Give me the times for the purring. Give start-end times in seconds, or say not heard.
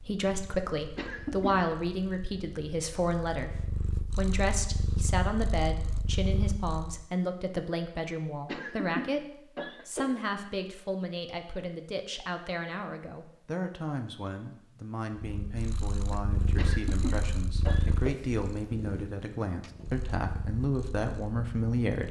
0.0-7.0, 15.2-22.0.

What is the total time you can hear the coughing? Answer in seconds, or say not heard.
4 s.